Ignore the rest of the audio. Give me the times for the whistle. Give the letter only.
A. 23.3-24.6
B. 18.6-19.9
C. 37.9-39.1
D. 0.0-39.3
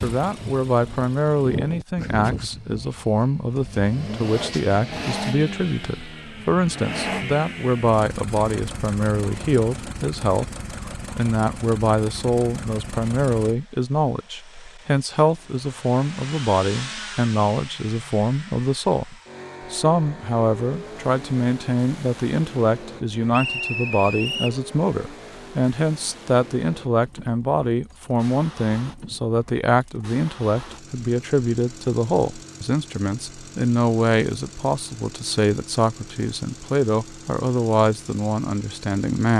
A.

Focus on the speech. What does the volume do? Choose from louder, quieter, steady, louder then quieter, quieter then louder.
steady.